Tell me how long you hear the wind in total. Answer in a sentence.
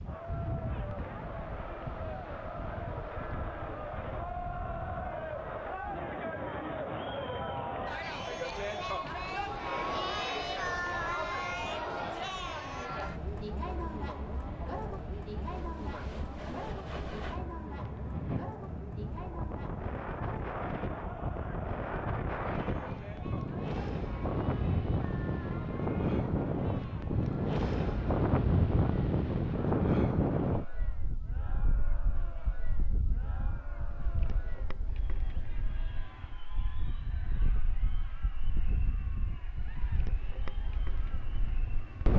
You can hear the wind for 42 seconds altogether.